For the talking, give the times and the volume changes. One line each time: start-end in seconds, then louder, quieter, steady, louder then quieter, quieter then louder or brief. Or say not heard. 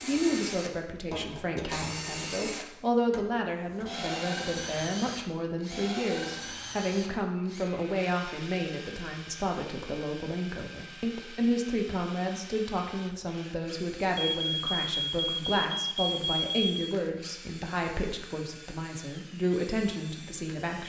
0.0-20.8 steady.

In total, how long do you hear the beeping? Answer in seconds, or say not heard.
3 s.